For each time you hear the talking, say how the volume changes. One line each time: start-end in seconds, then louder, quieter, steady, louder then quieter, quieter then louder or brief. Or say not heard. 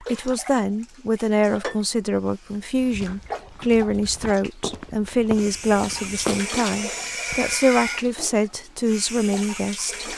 0.0-10.1 steady.